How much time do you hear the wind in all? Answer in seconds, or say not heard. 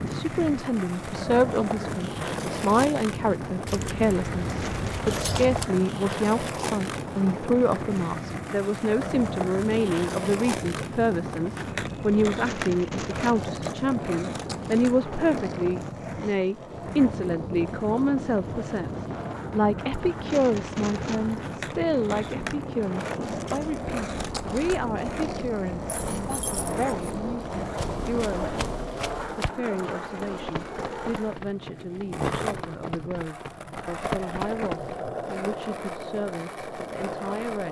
29 s.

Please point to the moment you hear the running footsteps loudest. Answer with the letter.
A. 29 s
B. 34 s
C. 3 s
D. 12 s
B.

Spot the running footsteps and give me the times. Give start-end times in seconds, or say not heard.
27.6-35.0.